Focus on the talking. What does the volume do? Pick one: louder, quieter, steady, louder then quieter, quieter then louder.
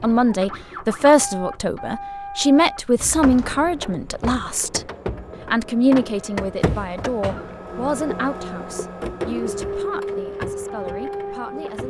quieter.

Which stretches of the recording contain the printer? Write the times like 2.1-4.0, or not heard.
0.0-11.8.